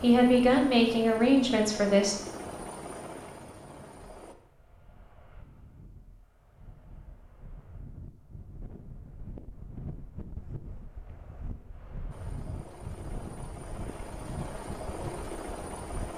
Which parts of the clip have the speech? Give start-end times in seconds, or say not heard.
0.0-2.1.